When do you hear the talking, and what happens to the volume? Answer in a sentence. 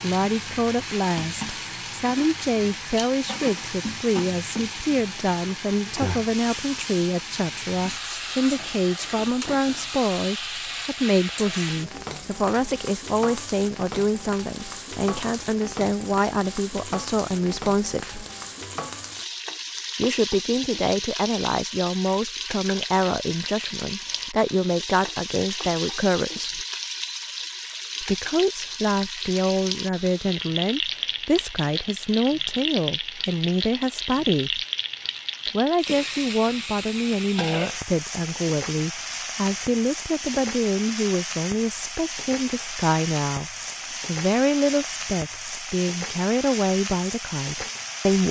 You can hear the talking from 0.0 to 18.2 s, at a steady volume; from 19.9 to 26.6 s, at a steady volume; from 28.0 to 34.6 s, at a steady volume; and from 35.5 to 48.2 s, at a steady volume.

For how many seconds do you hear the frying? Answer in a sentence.
The frying can be heard for 48 seconds in total.